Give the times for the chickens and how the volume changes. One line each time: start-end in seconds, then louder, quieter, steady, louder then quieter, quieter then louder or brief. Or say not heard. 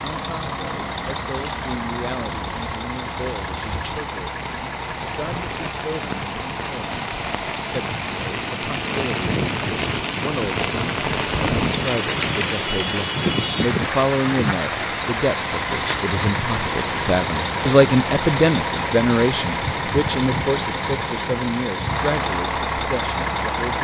not heard.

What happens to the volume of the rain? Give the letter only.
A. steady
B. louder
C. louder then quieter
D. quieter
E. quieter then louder
C.